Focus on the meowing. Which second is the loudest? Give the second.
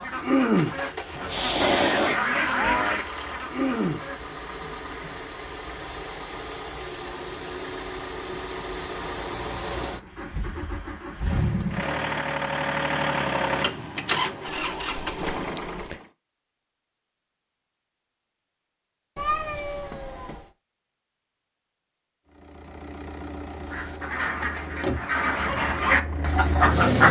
2 s.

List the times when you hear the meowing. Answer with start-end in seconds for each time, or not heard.
1.1-2.9, 14.7-15.9, 19.1-20.5.